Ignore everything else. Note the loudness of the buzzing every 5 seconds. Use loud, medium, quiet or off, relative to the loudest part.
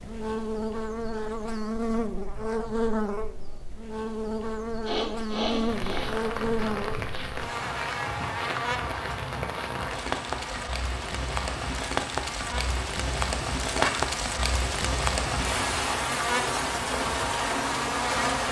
loud, loud, medium, loud.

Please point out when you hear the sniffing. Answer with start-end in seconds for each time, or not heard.
4.8-6.2, 13.7-14.2.